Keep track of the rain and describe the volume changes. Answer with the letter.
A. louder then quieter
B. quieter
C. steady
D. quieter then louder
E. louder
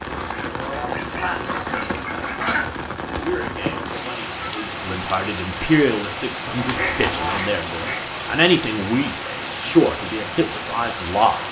C.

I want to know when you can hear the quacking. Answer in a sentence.
The quacking can be heard from 0.1 to 2.6 s and from 6.5 to 8.1 s.